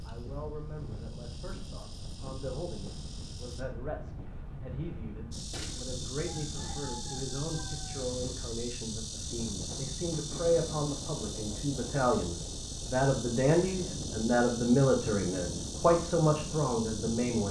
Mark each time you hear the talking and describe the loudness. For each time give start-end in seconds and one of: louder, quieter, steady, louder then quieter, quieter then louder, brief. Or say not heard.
0.0-17.4 louder.